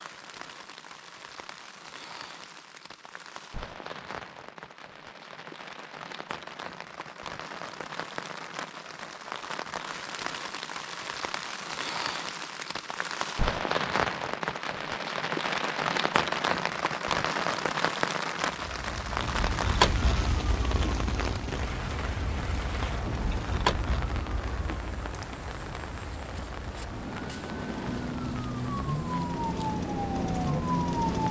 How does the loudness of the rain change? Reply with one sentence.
The loudness of the rain goes up, then down.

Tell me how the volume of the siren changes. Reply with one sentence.
The loudness of the siren goes down, then up.